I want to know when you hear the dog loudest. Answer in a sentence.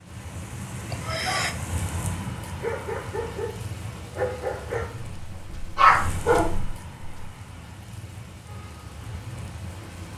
The loudest moment of the dog is at 6 seconds.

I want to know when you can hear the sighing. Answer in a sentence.
The sighing can be heard from 0.9 to 1.6 s.